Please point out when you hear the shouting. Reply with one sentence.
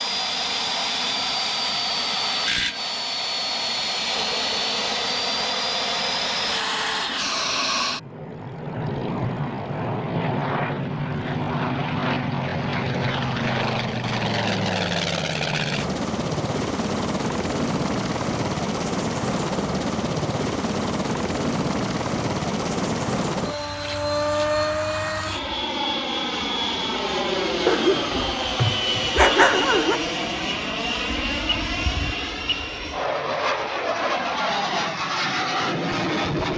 You can't hear the shouting here.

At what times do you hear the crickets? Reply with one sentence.
The crickets can't be heard in this clip.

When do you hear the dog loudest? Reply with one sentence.
The loudest moment of the dog is at 29 seconds.